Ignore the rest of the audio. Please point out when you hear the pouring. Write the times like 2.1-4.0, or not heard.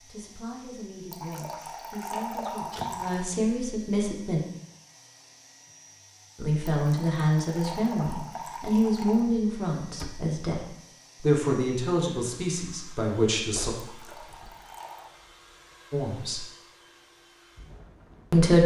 1.1-3.2, 6.7-9.2, 13.8-15.1.